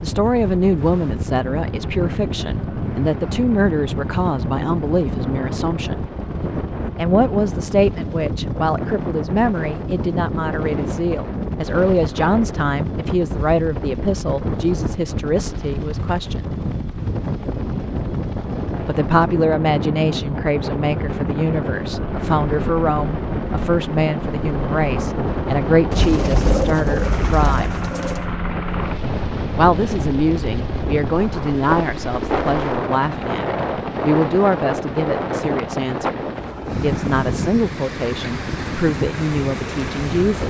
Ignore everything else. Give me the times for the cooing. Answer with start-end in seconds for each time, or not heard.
25.9-28.3.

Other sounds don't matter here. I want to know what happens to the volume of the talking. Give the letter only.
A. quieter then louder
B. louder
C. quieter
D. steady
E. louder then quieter
D.